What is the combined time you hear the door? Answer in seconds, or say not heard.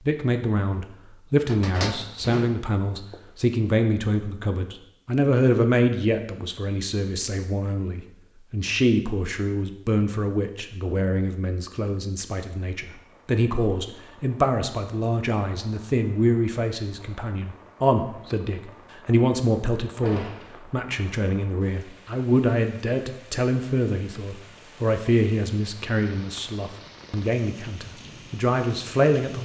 2 s.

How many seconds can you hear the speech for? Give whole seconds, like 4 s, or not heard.
29 s.